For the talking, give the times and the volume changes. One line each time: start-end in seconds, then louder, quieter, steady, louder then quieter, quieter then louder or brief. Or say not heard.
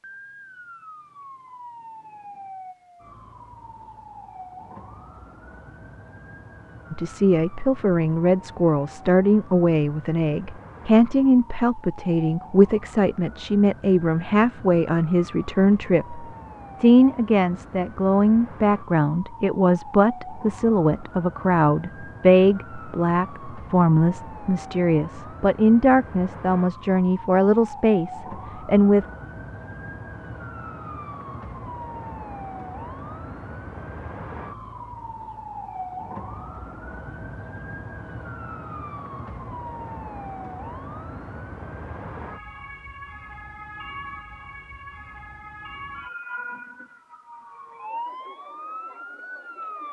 6.9-29.1 steady.